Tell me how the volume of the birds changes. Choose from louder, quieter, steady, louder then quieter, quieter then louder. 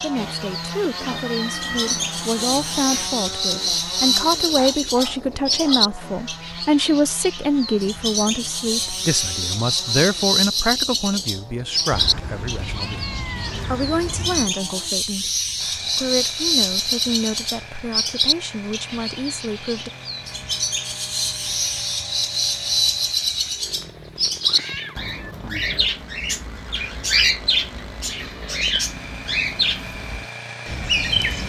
steady.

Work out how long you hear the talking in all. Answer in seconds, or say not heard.
20 s.